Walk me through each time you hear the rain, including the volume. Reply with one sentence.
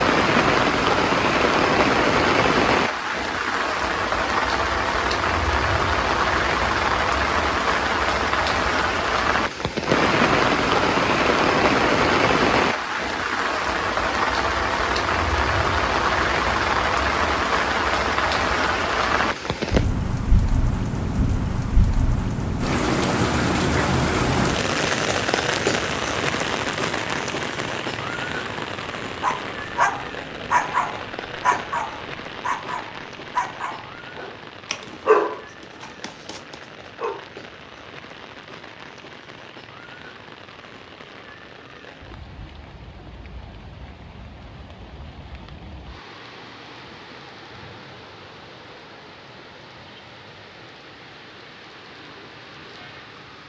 The rain can be heard from 0.0 to 53.4 s, getting quieter.